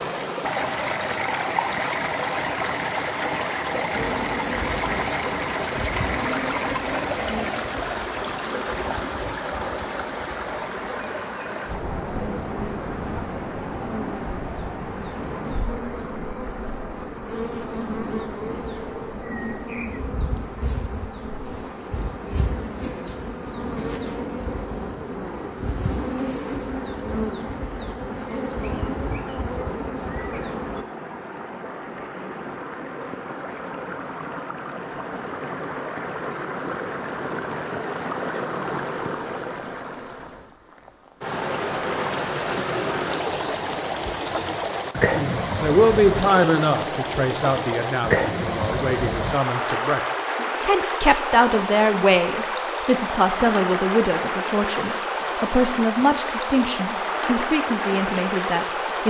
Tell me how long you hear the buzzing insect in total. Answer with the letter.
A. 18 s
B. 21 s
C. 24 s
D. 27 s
D.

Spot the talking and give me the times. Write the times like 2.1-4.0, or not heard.
45.1-50.0, 50.6-59.0.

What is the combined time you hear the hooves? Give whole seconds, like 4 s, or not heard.
not heard.